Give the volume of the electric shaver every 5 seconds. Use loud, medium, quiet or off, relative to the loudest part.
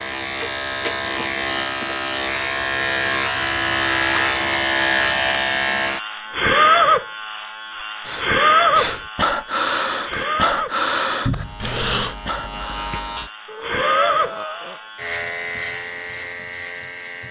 loud, loud, medium, medium.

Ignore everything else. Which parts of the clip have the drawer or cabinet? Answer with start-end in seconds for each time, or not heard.
11.2-11.7.